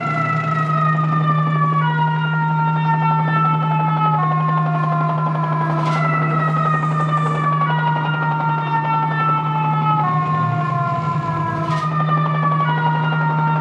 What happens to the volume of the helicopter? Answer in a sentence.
The loudness of the helicopter stays about the same.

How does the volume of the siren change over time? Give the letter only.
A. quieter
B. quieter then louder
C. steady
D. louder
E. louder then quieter
C.